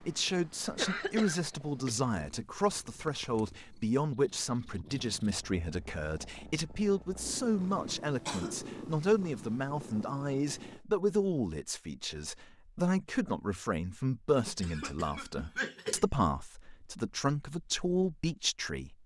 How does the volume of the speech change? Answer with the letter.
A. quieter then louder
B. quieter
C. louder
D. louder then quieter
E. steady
E.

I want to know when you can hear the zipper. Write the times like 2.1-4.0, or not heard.
not heard.